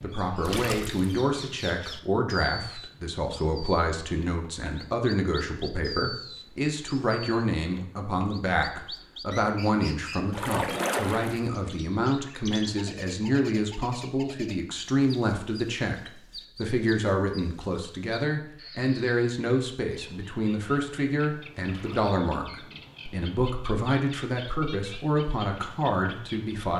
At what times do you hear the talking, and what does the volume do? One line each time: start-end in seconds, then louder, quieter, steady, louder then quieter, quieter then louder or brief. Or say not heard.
0.0-26.7 steady.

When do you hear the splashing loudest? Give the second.
11 s.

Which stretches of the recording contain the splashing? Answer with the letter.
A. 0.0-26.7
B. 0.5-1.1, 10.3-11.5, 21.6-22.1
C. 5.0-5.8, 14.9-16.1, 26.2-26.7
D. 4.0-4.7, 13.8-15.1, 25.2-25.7
B.